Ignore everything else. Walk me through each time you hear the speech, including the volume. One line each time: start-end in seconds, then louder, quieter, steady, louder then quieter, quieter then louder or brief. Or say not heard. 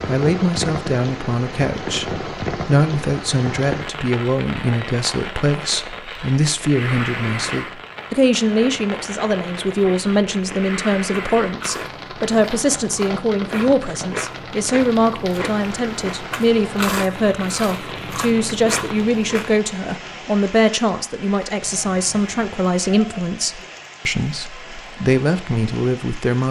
0.1-26.4 steady.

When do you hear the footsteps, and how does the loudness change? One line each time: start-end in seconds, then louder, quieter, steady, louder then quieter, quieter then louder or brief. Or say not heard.
not heard.